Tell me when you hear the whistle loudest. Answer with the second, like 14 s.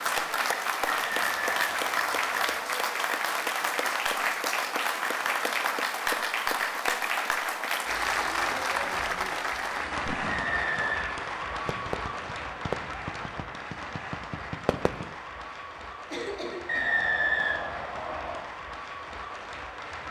17 s.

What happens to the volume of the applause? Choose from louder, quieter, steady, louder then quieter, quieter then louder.
quieter.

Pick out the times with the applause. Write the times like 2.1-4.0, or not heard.
0.0-20.0.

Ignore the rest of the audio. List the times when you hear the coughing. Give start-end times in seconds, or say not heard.
16.1-16.9.